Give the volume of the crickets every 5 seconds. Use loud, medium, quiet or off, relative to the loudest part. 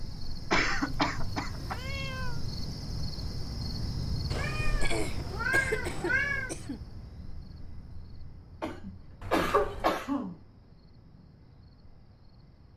loud, medium, quiet.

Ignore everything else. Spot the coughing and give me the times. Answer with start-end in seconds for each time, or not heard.
0.5-1.8, 4.8-6.8, 8.6-10.3.